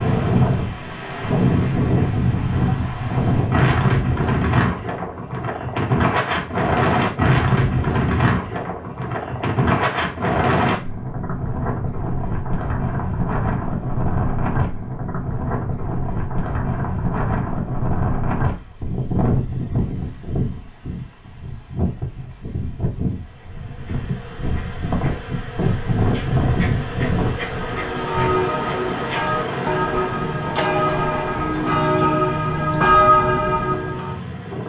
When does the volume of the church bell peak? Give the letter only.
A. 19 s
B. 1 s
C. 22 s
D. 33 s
D.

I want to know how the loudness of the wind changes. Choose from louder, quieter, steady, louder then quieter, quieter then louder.
quieter.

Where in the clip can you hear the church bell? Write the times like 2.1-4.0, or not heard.
27.6-34.2.